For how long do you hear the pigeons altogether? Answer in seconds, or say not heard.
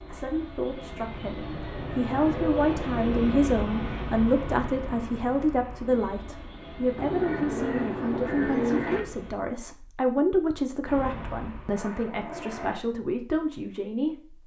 2 s.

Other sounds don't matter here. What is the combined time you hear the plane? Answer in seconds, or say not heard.
11 s.